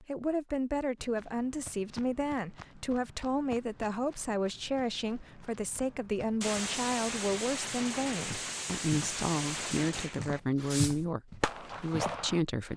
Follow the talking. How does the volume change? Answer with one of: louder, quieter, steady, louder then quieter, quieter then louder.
steady.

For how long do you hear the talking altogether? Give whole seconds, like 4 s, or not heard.
13 s.